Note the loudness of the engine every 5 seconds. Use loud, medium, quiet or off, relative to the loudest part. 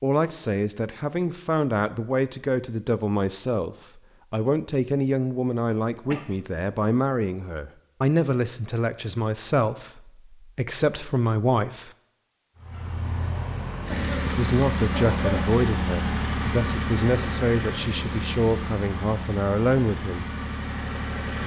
off, off, loud, loud, loud.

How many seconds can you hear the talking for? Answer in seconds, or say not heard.
18 s.